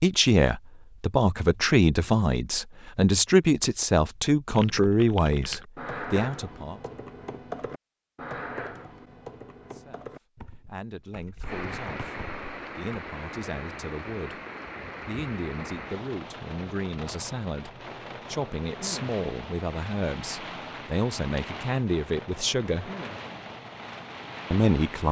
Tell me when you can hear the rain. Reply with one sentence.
You can hear the rain from 11.4 to 25.0 s.